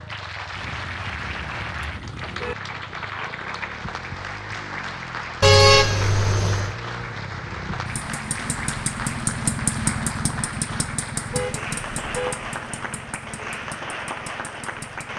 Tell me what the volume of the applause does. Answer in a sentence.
The volume of the applause stays about the same.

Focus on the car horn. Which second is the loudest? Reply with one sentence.
The volume of the car horn peaks at 6 seconds.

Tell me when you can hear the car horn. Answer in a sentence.
The car horn can be heard from 0.5 to 2.5 s, from 5.4 to 6.8 s and from 11.3 to 12.4 s.